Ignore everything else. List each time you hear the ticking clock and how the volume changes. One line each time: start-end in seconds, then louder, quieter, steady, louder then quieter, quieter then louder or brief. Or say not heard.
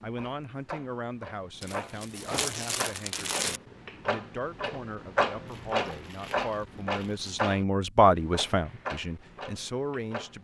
0.0-10.3 louder then quieter.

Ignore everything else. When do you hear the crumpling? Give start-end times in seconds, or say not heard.
1.6-3.6, 5.5-7.3.